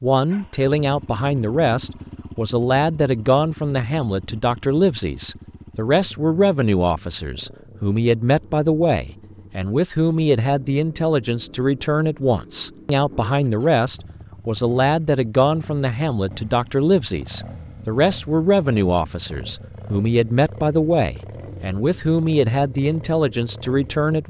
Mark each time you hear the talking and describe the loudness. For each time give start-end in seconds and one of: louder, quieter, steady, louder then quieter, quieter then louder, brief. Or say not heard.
0.0-24.2 steady.